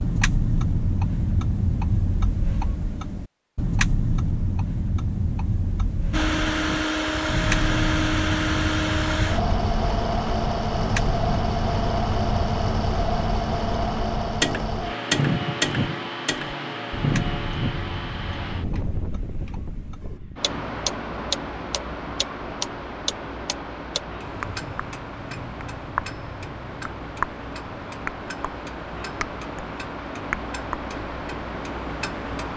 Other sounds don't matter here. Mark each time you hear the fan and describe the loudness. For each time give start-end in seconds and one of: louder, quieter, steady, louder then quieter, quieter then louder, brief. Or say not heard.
6.1-32.5 quieter.